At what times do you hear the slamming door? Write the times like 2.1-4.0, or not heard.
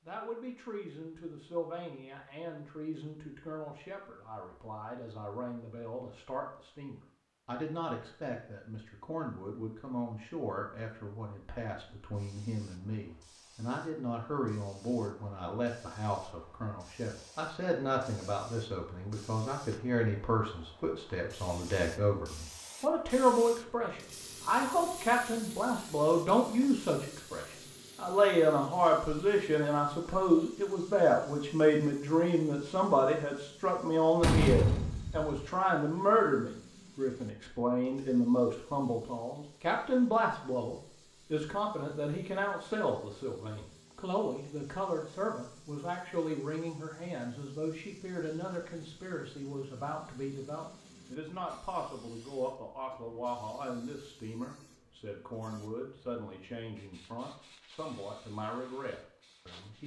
34.2-35.4.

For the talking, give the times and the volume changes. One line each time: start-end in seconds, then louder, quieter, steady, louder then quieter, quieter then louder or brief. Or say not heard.
0.1-59.8 louder then quieter.